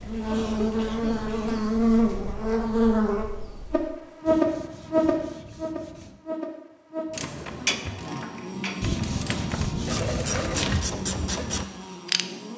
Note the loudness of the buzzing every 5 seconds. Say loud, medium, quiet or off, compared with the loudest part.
loud, medium, quiet.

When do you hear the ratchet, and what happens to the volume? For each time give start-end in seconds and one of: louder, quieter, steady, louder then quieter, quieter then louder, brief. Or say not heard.
7.1-12.2 quieter then louder.